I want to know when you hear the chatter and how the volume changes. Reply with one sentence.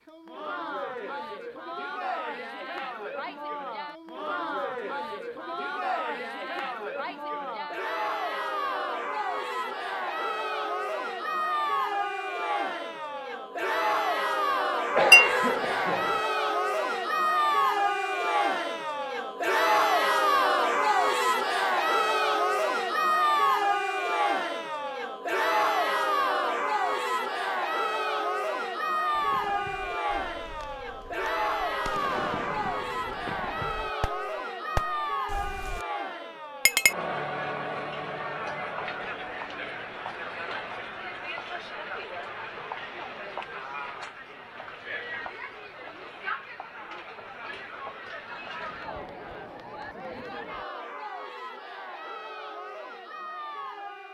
You can hear the chatter from 0.1 to 54.0 s, getting louder then quieter.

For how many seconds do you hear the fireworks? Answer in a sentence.
The fireworks can be heard for 7 seconds in total.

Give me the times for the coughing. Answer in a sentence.
You can hear the coughing from 14.9 to 16.2 s.